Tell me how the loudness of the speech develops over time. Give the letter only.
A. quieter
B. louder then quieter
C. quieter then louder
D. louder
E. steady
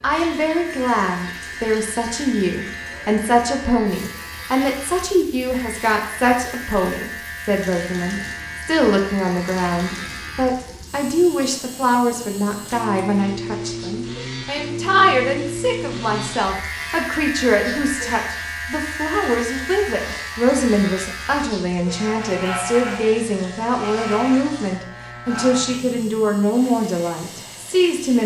E.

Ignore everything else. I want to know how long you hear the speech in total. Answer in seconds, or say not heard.
28 s.